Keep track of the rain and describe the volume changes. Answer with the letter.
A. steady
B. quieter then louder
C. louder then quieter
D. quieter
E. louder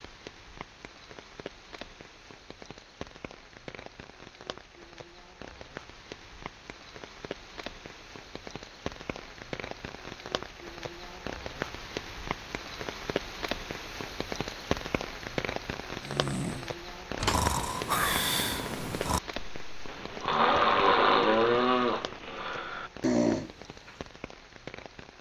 C.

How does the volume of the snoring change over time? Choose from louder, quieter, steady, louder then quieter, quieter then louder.
louder then quieter.